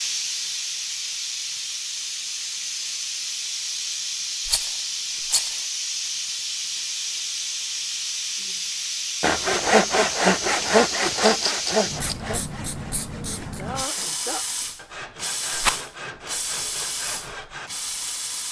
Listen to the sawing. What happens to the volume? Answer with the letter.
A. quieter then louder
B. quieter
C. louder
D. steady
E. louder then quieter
B.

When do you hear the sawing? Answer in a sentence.
The sawing can be heard from 9.2 to 17.7 s.